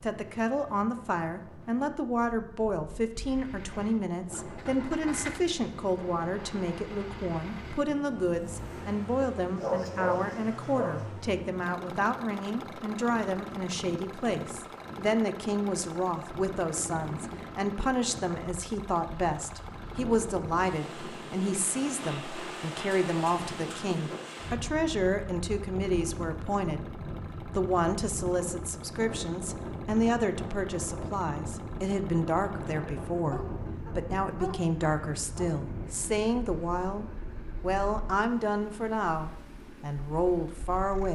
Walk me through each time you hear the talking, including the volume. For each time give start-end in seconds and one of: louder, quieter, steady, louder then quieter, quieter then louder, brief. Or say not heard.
0.0-41.1 steady.